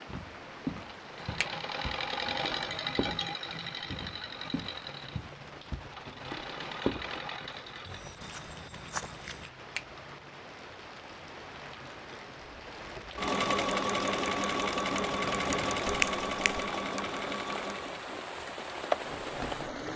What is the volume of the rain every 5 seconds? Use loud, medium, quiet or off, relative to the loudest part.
medium, medium, medium, loud.